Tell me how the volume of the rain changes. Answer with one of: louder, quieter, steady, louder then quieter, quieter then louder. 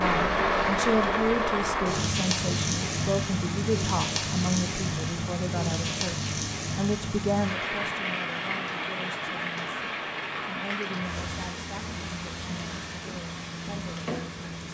quieter.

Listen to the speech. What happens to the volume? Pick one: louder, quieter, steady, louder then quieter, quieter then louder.
quieter.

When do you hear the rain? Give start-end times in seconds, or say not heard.
0.0-14.6.